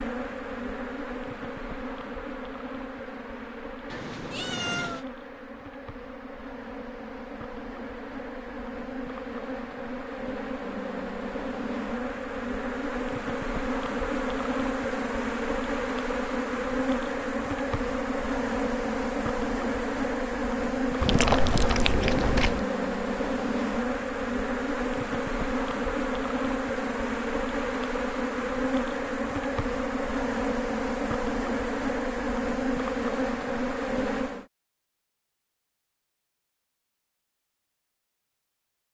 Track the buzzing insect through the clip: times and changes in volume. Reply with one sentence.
You can hear the buzzing insect from 0.0 to 34.5 s, getting louder.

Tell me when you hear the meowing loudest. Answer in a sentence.
The loudest moment of the meowing is at 21 seconds.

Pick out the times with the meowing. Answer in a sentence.
The meowing can be heard from 3.9 to 5.0 s and from 21.0 to 22.6 s.